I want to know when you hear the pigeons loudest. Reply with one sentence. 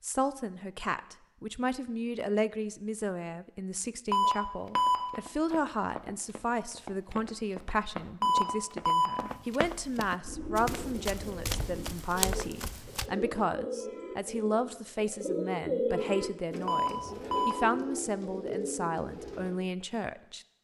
The volume of the pigeons peaks at 16 seconds.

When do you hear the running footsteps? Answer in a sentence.
You can hear the running footsteps from 4.7 to 13.1 s.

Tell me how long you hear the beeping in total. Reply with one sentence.
The beeping can be heard for 3 seconds in total.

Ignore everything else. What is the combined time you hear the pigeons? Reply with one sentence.
You can hear the pigeons for 9 seconds altogether.